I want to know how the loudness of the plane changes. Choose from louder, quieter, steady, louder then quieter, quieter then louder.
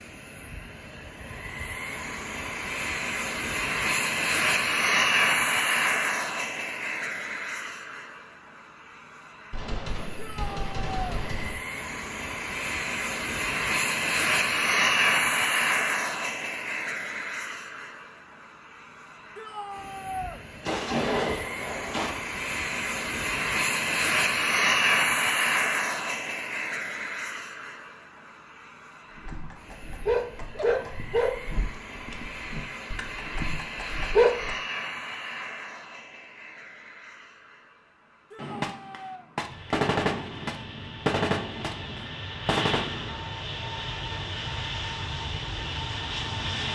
quieter.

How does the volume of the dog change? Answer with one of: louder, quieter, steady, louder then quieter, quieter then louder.
quieter.